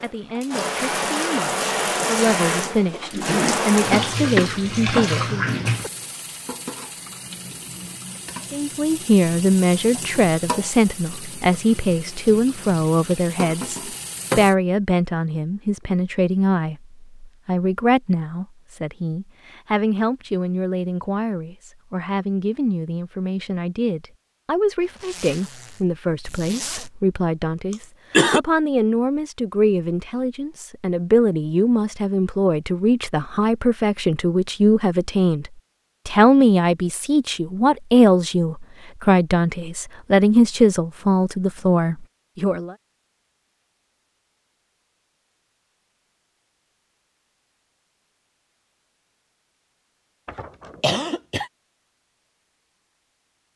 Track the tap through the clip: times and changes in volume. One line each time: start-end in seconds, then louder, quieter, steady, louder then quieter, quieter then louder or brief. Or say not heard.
0.0-14.6 quieter.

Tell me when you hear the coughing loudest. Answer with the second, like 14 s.
28 s.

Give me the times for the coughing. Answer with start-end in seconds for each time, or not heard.
3.9-5.9, 27.7-28.4, 50.2-51.5.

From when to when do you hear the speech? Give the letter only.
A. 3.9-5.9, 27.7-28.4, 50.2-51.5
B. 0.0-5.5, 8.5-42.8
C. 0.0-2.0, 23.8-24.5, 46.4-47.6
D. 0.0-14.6
B.